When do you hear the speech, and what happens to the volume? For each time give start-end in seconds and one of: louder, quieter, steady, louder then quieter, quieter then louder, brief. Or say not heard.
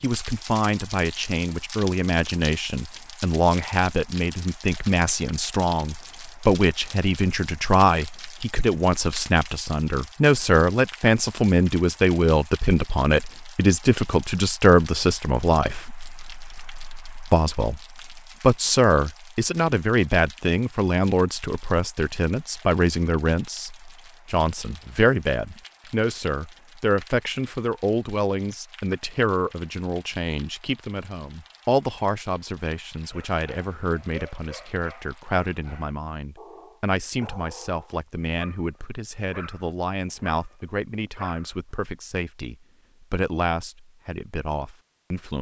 0.0-45.3 quieter.